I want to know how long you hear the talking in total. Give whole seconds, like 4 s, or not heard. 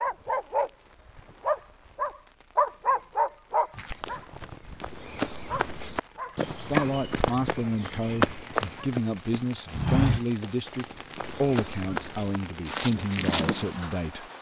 8 s.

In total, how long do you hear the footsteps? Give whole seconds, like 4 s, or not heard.
10 s.